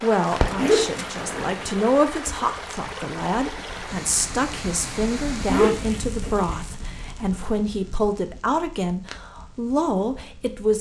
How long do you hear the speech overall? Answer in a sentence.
The speech can be heard for 11 seconds in total.